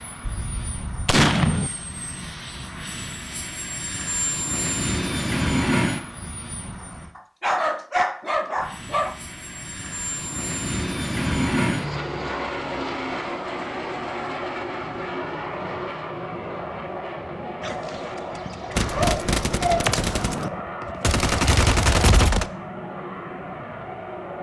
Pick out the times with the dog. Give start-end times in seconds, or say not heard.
7.2-9.2, 17.6-19.9.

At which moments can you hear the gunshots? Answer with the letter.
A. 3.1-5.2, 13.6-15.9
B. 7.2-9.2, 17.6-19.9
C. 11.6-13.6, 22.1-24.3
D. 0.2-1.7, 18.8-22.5
D.